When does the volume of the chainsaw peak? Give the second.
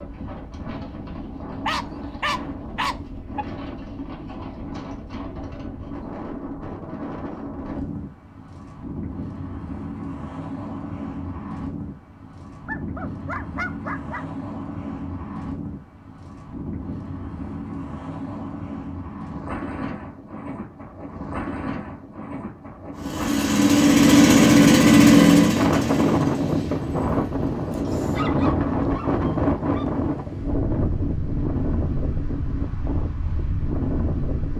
25 s.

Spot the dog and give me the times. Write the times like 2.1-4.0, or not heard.
1.6-3.5, 12.7-14.2, 27.9-29.9.